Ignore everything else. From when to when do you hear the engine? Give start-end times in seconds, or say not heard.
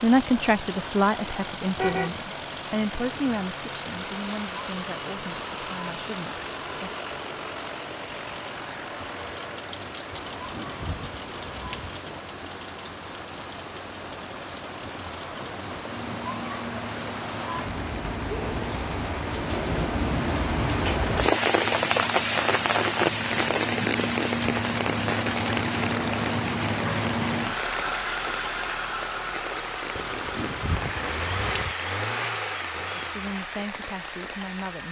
0.0-34.8.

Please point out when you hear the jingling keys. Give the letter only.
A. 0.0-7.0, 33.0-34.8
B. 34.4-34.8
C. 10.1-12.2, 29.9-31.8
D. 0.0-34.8
C.